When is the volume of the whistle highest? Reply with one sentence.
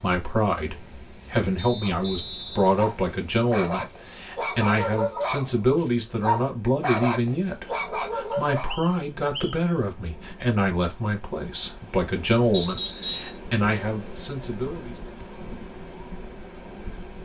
The loudest moment of the whistle is at 13 seconds.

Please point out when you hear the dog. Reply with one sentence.
You can hear the dog from 1.8 to 8.7 s.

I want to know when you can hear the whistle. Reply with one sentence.
The whistle can be heard from 1.6 to 2.8 s, from 8.3 to 9.6 s and from 12.5 to 13.4 s.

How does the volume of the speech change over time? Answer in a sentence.
The loudness of the speech stays about the same.